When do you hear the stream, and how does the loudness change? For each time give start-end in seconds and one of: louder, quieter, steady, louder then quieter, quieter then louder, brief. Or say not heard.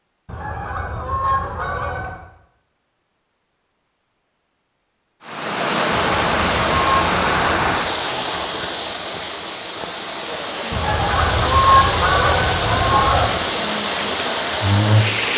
5.2-15.3 quieter then louder.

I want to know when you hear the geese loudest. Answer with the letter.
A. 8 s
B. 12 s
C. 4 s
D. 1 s
B.